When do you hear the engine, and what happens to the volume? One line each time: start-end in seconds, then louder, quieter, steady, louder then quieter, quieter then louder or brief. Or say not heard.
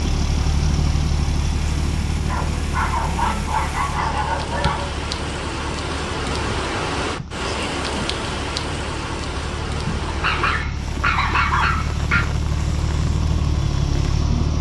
0.0-14.5 quieter then louder.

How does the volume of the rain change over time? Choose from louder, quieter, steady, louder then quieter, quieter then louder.
louder then quieter.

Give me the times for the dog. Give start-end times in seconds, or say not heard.
2.2-4.9, 10.1-12.2.